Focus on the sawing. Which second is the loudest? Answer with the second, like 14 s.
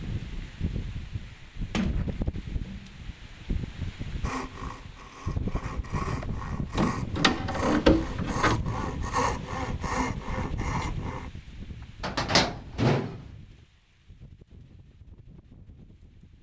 9 s.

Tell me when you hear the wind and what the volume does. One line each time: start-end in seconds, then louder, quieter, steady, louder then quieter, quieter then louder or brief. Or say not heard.
0.0-16.3 quieter.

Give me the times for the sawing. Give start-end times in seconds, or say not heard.
4.2-11.3.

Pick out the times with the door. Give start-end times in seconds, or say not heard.
1.7-2.9, 6.1-8.6, 12.0-13.2.